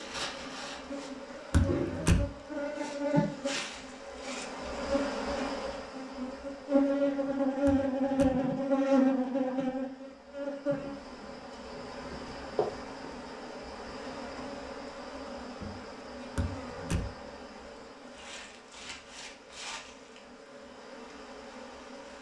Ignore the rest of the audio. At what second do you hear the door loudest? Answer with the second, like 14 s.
2 s.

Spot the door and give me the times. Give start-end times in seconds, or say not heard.
1.5-2.3, 7.7-8.4, 16.4-17.1.